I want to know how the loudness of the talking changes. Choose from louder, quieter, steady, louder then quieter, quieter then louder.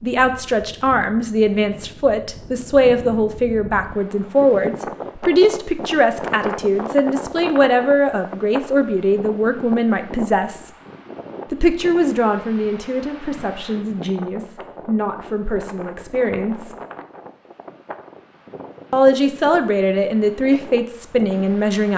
quieter then louder.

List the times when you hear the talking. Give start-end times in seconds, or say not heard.
0.0-10.7, 11.5-16.8, 18.9-21.9.